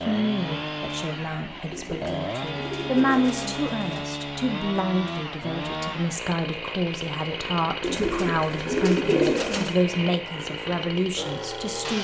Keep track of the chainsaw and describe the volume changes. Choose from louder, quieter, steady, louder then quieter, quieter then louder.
steady.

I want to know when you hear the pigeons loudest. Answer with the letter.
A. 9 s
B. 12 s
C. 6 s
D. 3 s
A.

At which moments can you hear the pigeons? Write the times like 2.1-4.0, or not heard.
1.7-4.0, 7.8-9.8.